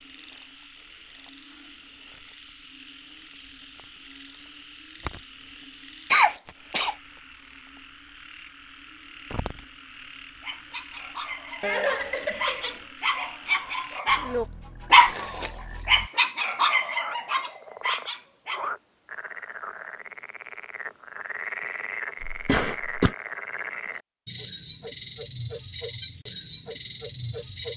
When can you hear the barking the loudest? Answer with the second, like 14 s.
15 s.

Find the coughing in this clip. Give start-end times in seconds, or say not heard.
6.1-7.0, 11.6-12.8, 22.2-23.1.